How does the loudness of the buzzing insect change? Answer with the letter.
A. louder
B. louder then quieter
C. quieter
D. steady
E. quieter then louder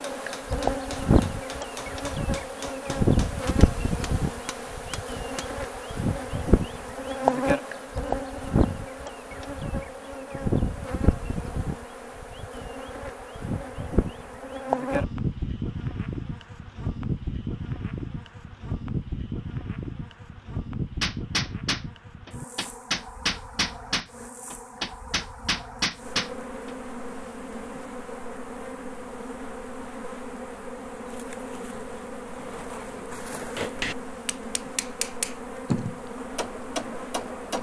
C.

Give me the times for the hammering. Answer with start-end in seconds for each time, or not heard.
0.1-5.5, 21.0-26.8, 33.5-37.5.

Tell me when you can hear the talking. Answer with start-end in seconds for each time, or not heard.
not heard.